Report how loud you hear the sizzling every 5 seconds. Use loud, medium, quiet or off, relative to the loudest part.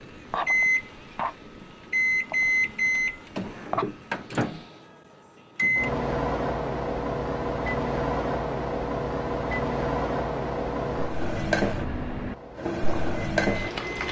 medium, off, loud.